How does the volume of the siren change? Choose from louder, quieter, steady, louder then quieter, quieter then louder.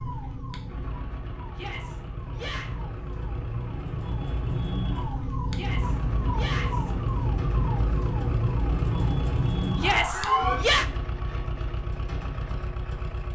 louder.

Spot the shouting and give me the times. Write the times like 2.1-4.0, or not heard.
1.5-2.7, 5.5-6.9, 9.8-10.8.